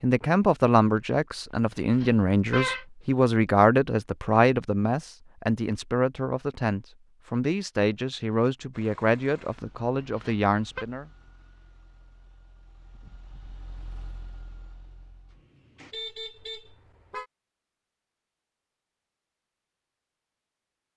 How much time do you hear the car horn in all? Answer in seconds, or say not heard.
3 s.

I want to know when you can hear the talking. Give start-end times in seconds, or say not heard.
0.0-11.1.